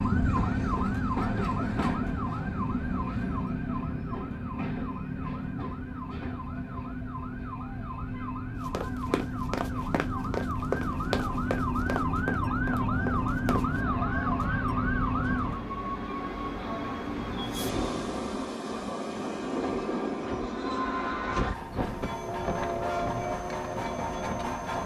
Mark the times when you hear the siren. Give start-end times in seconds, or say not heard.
0.0-15.7.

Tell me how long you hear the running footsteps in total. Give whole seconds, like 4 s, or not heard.
5 s.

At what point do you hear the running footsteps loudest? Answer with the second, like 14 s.
11 s.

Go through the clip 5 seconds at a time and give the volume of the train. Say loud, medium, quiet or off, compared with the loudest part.
loud, quiet, medium, loud, loud.